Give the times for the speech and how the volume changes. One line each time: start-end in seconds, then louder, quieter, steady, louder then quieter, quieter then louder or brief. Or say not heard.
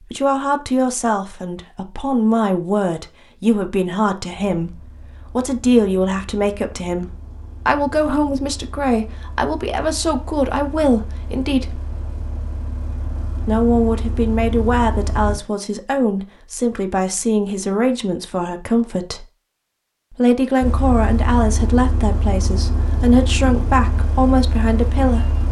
0.0-11.8 steady
13.4-19.2 steady
20.1-25.3 steady.